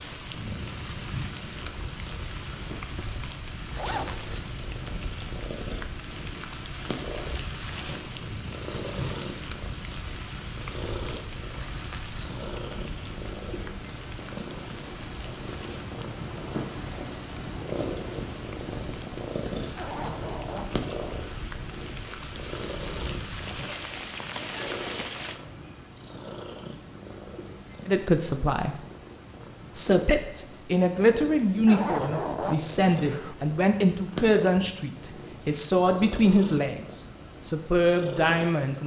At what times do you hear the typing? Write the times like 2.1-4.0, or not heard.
not heard.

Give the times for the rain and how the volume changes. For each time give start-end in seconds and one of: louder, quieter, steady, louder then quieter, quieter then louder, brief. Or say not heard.
0.0-25.4 quieter then louder.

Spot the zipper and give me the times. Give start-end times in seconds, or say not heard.
3.8-4.2, 19.8-21.4, 31.6-33.4.